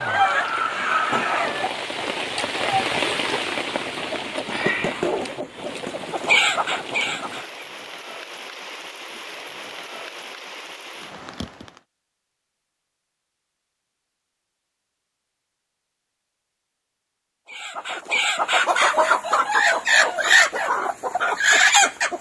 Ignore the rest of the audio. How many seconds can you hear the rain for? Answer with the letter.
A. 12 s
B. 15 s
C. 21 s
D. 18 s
A.